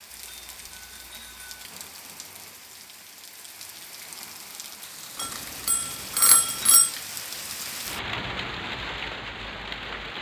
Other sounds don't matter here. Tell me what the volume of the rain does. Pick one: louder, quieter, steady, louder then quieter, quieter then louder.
louder.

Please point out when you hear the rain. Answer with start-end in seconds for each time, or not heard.
0.0-10.1.